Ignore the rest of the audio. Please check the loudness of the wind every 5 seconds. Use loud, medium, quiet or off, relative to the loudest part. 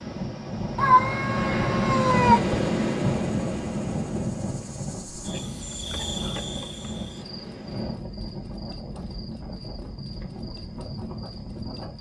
loud, medium, medium.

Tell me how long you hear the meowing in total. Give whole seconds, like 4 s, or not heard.
2 s.